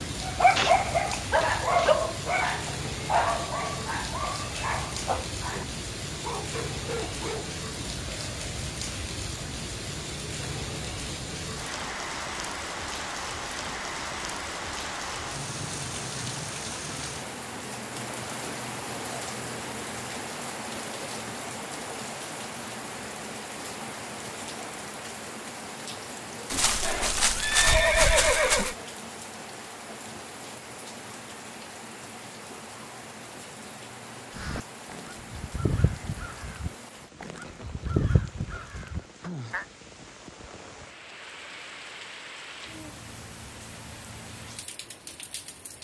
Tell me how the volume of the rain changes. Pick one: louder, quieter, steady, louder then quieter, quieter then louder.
quieter.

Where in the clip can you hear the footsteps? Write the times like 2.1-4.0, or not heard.
not heard.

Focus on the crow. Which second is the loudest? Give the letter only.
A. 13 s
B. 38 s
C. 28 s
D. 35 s
B.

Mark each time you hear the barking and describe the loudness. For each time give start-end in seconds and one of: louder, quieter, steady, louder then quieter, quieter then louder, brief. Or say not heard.
0.2-7.6 quieter.